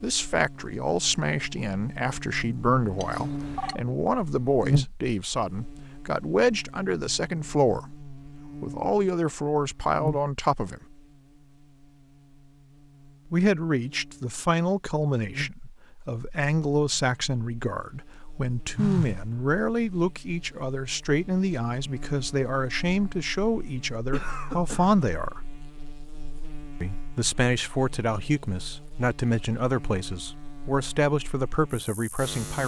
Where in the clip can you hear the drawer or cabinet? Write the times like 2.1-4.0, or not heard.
not heard.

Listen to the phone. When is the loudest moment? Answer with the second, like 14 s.
19 s.